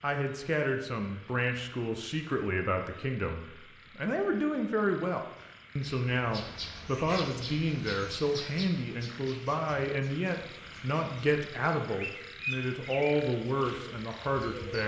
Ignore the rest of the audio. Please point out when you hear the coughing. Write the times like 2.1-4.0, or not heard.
not heard.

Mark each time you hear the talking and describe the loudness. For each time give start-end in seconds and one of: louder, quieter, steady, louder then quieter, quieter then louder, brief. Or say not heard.
0.0-14.8 steady.